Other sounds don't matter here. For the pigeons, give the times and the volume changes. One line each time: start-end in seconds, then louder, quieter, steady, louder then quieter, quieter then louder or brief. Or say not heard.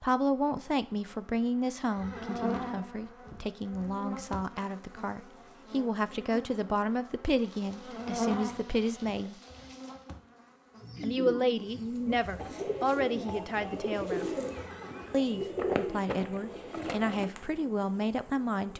10.8-17.3 steady.